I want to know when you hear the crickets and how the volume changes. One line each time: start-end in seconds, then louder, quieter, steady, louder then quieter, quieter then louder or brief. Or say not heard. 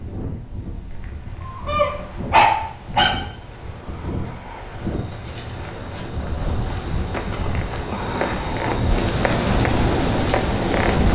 4.9-11.0 louder.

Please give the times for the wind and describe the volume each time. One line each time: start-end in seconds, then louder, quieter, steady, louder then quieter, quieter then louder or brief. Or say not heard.
0.0-11.0 louder.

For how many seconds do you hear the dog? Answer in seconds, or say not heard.
2 s.